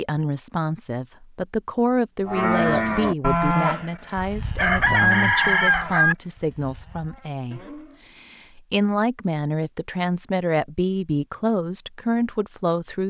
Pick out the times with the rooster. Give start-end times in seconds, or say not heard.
4.5-6.2.